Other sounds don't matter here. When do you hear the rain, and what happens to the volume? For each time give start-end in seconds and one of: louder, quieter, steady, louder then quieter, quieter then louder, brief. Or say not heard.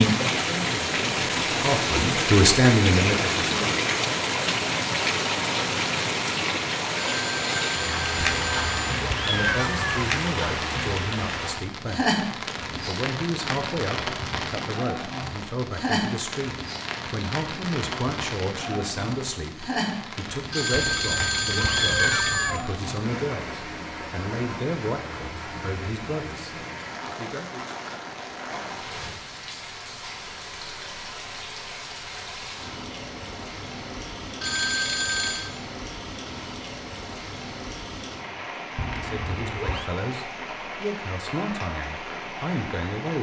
0.0-43.1 quieter.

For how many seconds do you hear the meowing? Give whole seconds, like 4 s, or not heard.
5 s.